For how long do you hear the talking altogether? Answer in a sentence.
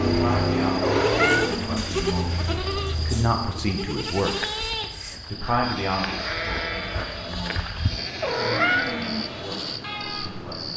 You can hear the talking for 10 seconds altogether.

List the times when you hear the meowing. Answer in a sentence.
You can hear the meowing from 0.8 to 1.9 s and from 8.2 to 9.2 s.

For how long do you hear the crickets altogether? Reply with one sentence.
The crickets can be heard for 11 seconds in total.